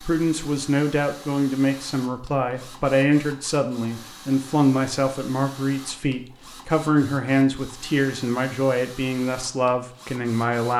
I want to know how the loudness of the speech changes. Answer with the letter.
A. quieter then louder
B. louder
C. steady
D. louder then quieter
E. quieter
C.